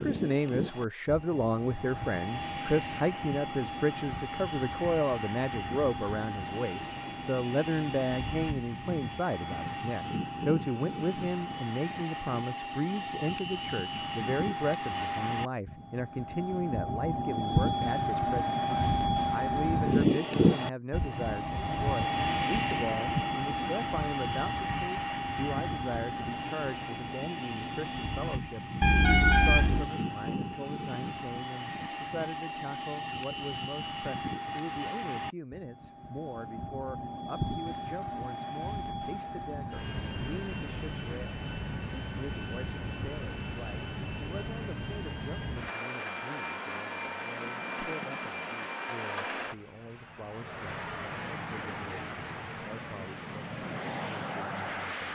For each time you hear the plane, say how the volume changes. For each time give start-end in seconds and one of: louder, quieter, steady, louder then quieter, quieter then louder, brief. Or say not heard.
0.0-55.0 louder then quieter.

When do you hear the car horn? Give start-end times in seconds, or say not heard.
28.8-29.9.